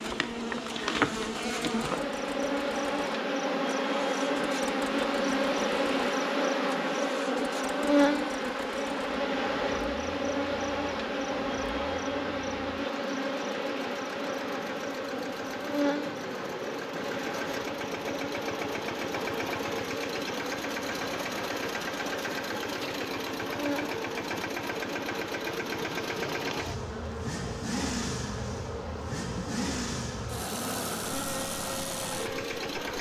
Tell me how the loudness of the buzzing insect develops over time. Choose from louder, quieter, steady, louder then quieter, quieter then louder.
quieter.